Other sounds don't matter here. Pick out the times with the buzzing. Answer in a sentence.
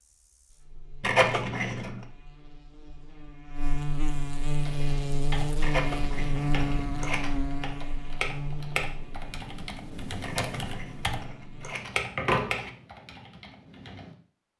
The buzzing can be heard from 0.0 to 11.8 s.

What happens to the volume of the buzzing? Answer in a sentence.
The volume of the buzzing goes up, then down.